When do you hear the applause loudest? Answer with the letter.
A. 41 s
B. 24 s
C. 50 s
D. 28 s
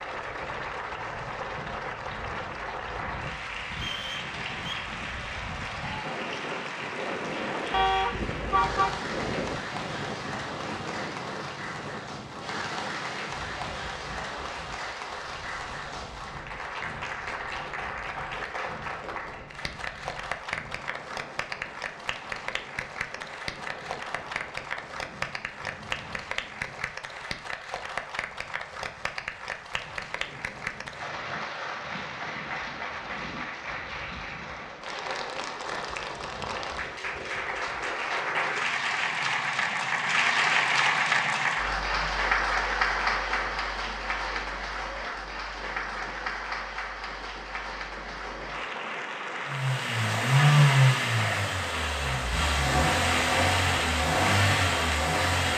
A.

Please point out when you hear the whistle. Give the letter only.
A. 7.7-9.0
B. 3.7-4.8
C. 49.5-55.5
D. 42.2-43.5
B.